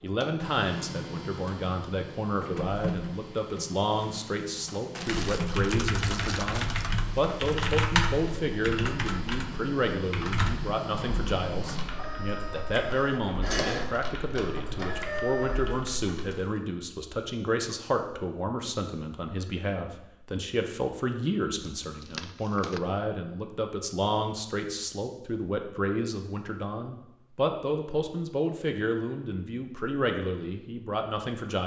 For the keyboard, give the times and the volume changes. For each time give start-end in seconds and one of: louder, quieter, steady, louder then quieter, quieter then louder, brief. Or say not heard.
5.0-16.4 quieter.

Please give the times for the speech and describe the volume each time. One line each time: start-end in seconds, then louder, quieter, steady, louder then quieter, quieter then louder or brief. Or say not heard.
0.0-31.6 steady.